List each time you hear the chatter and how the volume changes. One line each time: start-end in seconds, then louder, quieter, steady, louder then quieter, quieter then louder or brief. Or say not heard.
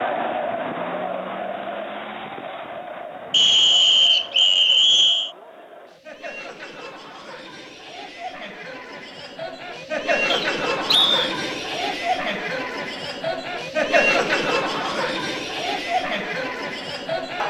0.0-17.4 quieter then louder.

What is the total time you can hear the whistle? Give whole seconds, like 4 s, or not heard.
3 s.